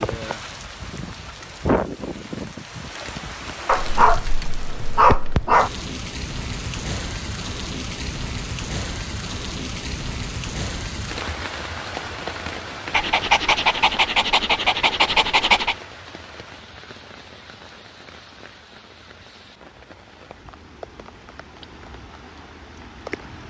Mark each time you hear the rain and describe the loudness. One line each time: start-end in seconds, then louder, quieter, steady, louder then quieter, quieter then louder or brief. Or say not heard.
0.0-23.4 quieter.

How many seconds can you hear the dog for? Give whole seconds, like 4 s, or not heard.
5 s.